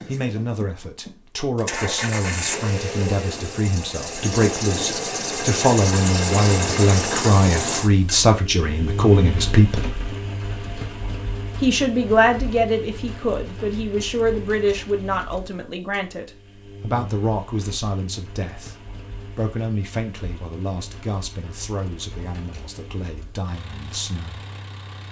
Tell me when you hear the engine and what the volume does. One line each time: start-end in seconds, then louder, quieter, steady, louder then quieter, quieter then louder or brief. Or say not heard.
0.0-25.0 quieter.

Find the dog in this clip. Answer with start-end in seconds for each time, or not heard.
not heard.